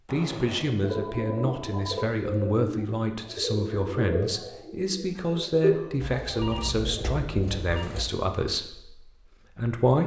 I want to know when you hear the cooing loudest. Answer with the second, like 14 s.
6 s.